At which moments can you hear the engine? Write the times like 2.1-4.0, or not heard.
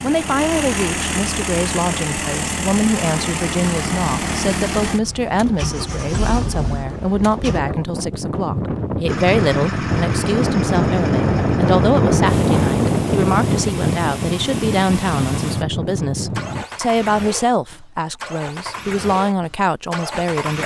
0.0-7.6, 9.1-20.6.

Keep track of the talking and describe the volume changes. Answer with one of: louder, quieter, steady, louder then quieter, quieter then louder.
steady.